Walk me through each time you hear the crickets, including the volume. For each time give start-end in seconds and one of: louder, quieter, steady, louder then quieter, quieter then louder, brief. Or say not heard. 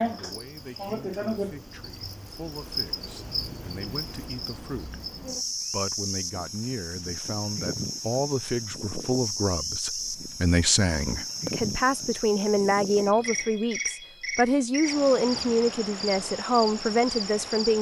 0.0-17.7 steady.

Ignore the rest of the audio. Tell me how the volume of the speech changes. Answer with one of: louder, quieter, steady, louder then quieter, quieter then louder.
louder.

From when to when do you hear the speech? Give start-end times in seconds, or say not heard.
0.0-5.0, 5.7-17.7.